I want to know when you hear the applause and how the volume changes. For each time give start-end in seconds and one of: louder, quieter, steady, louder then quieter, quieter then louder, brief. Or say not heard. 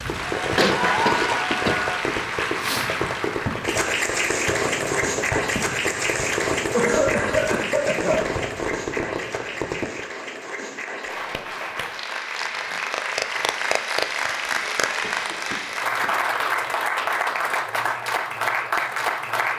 0.0-19.5 quieter then louder.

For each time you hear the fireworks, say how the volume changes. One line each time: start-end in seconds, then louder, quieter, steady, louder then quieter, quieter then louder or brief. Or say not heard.
0.1-10.0 steady.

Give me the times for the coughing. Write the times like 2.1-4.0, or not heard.
0.6-1.9, 6.7-8.3, 15.0-16.1.